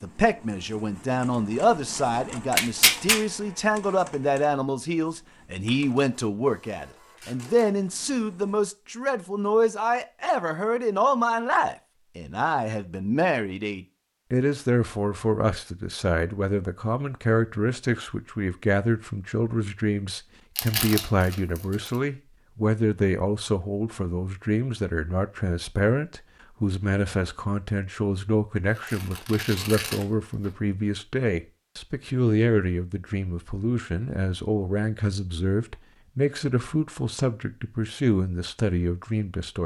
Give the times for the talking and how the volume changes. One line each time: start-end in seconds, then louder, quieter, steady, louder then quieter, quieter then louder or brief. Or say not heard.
0.0-39.6 steady.